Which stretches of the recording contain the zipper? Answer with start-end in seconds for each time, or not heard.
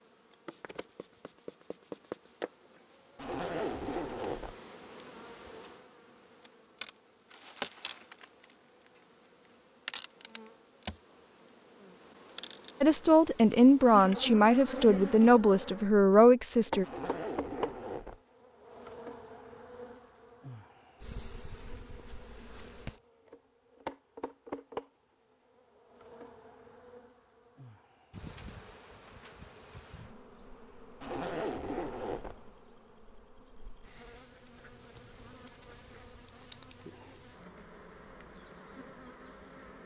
3.1-4.5, 16.8-18.2, 31.0-32.4.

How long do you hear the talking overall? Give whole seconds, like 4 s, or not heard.
4 s.